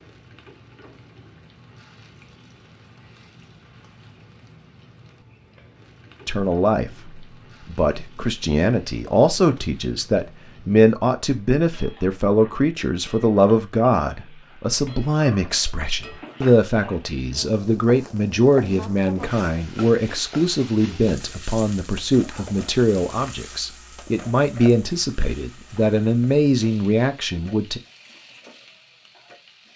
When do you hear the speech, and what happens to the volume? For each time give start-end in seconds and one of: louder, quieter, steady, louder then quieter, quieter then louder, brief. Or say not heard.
6.2-27.8 steady.